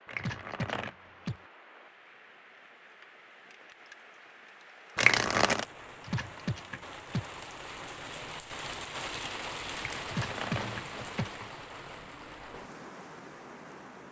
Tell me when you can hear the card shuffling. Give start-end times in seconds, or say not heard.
0.1-0.9, 5.0-5.7, 10.0-11.5.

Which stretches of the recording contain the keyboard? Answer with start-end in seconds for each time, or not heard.
0.1-1.4, 6.0-7.2, 10.1-11.3.